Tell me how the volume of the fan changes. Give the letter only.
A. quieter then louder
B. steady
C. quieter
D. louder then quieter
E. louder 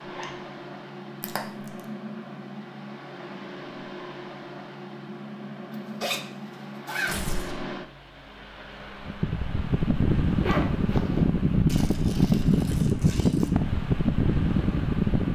E.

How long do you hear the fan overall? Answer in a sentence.
You can hear the fan for 15 seconds altogether.